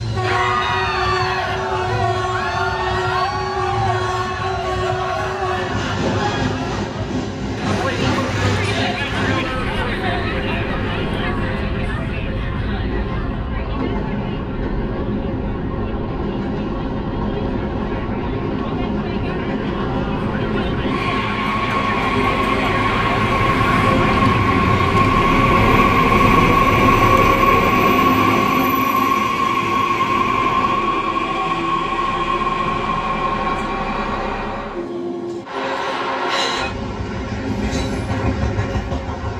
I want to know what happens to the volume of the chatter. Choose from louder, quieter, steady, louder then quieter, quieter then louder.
quieter then louder.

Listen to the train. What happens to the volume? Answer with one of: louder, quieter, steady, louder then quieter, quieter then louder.
louder then quieter.